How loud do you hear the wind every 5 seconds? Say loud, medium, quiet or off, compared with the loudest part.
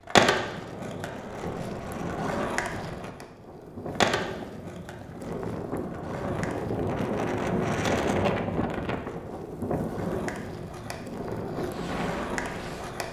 medium, loud, medium.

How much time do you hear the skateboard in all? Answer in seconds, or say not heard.
13 s.